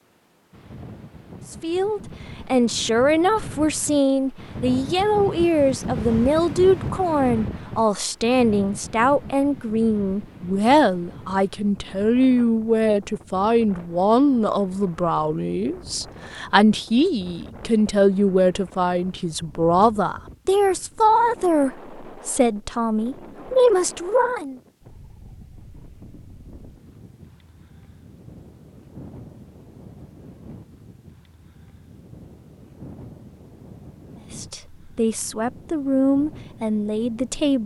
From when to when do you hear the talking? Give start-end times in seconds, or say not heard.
1.5-24.6, 34.3-37.6.